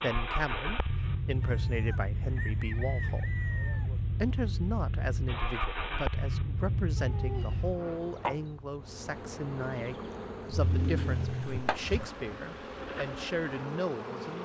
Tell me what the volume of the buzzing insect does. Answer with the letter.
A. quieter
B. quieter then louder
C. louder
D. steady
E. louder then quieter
B.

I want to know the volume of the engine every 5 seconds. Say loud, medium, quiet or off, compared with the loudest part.
loud, loud, quiet.